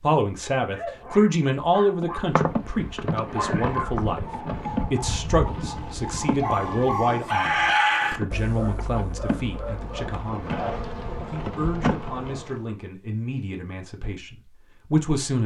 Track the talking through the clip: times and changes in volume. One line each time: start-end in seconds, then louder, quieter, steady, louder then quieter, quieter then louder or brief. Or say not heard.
0.0-15.4 quieter.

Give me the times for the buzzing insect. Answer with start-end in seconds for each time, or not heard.
2.0-12.6.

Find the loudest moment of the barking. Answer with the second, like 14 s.
8 s.